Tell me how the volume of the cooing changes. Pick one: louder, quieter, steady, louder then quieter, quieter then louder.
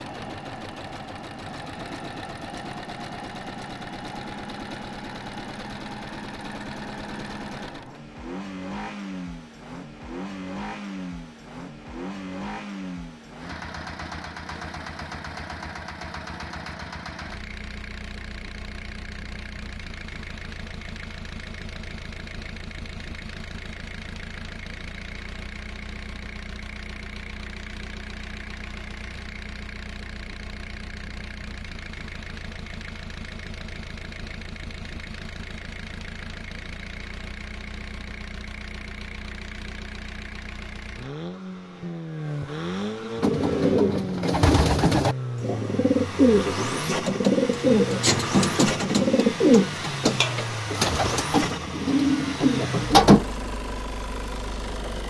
steady.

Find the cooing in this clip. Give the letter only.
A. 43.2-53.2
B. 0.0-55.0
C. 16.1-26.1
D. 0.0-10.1
A.